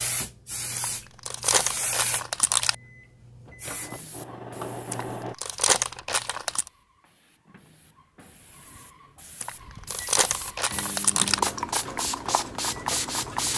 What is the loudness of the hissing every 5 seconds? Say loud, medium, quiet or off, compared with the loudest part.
medium, quiet, loud.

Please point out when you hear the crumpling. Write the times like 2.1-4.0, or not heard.
0.8-2.8, 4.9-6.7, 9.4-11.4.